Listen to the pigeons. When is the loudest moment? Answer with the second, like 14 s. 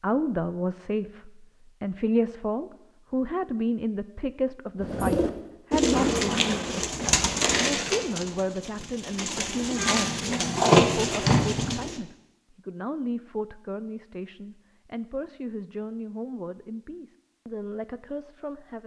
11 s.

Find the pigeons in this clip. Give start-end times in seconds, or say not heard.
4.8-12.0.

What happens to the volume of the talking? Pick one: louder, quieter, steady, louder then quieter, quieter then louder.
quieter.